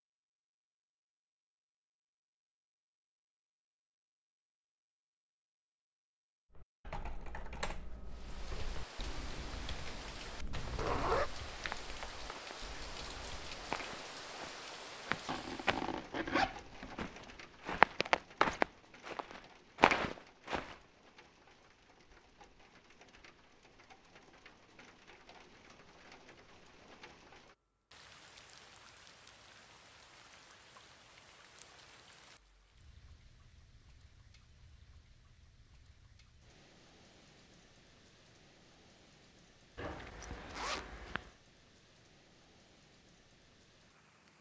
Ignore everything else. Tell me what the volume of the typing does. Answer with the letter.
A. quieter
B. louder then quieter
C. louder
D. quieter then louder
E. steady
A.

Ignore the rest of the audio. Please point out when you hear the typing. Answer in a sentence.
You can hear the typing from 6.5 to 13.8 s.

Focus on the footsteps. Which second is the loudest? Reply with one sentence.
The volume of the footsteps peaks at 18 seconds.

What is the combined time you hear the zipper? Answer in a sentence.
The zipper can be heard for 4 seconds in total.